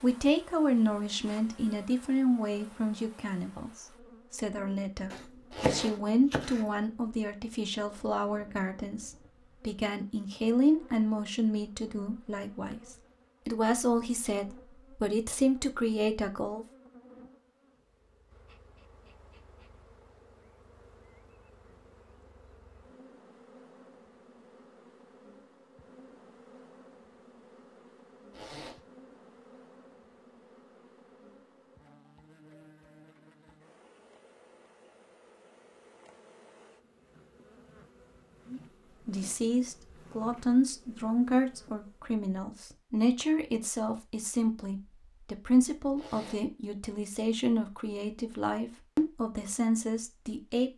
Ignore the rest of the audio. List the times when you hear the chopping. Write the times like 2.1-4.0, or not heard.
5.1-6.7.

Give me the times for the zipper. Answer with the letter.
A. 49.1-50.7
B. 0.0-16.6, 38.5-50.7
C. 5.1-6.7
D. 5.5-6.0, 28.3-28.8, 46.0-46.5
D.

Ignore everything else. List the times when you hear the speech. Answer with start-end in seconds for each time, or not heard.
0.0-16.6, 38.5-50.7.